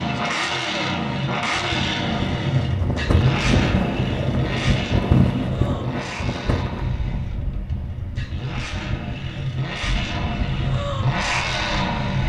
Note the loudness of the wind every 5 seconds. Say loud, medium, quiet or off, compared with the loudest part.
loud, loud, medium.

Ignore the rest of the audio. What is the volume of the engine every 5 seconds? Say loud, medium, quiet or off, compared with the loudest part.
loud, medium, loud.